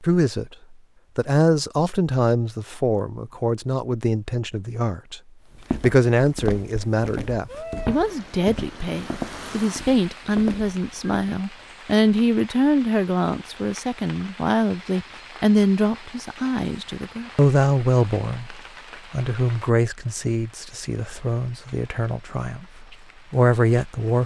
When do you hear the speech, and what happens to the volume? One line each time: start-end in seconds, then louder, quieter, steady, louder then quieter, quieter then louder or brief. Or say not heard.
0.0-24.2 steady.